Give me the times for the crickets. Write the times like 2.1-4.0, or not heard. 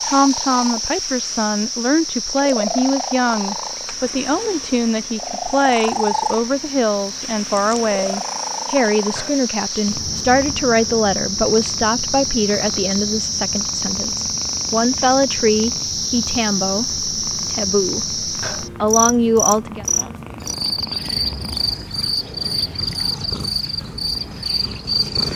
0.0-25.3.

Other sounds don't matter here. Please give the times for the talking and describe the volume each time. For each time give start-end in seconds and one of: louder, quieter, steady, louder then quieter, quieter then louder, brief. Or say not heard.
0.0-19.9 steady.